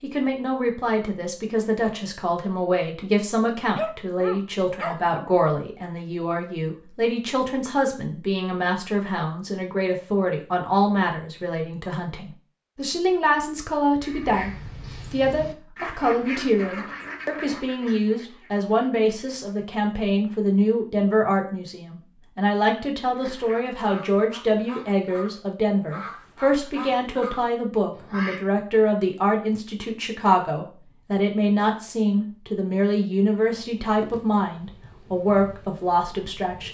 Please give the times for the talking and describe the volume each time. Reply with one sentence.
The talking can be heard from 0.0 to 36.6 s, at a steady volume.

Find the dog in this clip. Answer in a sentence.
You can hear the dog from 3.8 to 5.4 s.